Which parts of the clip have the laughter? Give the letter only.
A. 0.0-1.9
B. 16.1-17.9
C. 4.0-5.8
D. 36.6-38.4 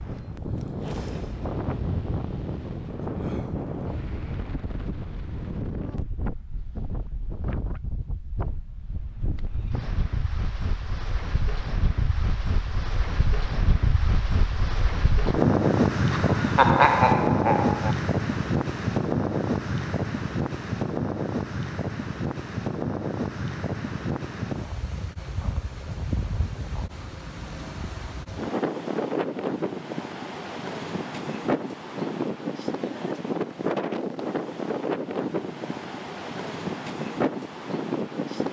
B.